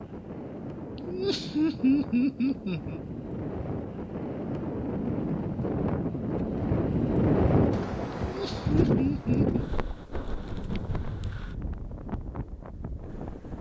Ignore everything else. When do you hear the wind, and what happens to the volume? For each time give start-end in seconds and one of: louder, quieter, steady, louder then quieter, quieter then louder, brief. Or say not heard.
0.0-13.5 louder then quieter.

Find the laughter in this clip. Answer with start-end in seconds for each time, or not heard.
1.1-3.0, 8.2-9.7.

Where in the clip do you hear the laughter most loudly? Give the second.
2 s.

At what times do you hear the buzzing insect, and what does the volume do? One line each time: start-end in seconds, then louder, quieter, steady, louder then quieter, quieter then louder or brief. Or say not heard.
not heard.